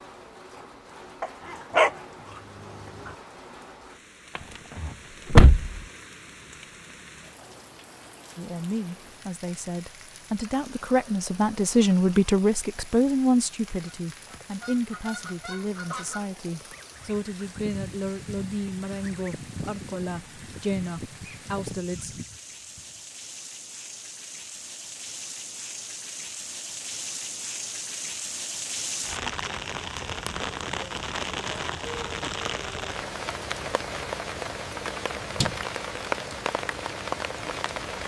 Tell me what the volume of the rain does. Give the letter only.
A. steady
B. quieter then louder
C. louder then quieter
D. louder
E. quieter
D.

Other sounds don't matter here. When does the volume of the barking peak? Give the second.
2 s.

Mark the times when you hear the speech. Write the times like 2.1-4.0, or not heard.
8.3-22.2.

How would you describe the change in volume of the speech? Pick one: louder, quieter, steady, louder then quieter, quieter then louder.
louder then quieter.